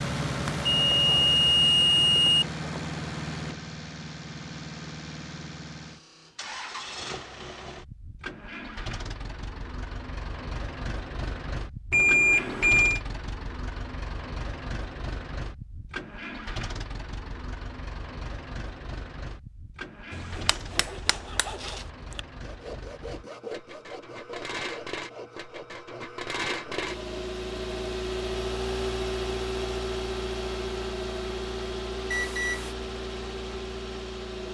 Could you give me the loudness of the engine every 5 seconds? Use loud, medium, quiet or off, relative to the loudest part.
loud, medium, medium, medium, medium, loud, loud.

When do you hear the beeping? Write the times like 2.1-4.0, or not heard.
0.5-2.5, 11.9-13.0, 32.1-32.8.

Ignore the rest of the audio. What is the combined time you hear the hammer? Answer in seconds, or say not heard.
2 s.